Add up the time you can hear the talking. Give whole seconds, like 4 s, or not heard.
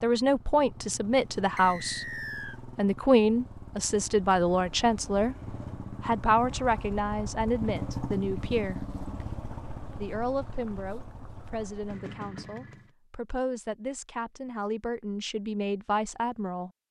15 s.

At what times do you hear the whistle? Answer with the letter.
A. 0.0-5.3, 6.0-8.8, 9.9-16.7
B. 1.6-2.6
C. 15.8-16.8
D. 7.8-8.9
B.